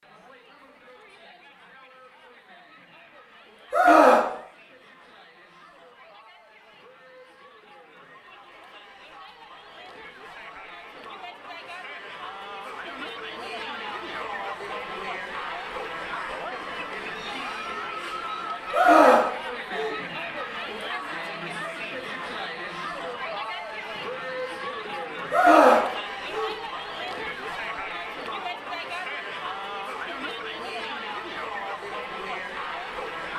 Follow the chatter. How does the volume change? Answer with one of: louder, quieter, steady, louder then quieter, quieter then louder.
louder.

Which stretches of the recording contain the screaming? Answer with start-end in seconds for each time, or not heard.
3.7-4.3, 18.7-19.9, 25.3-26.5.